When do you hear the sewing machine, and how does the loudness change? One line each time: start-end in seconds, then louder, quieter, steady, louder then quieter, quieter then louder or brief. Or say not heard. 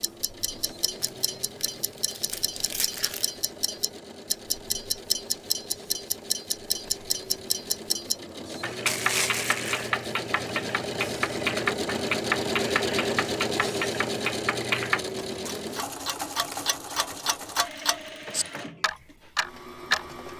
0.0-20.3 louder then quieter.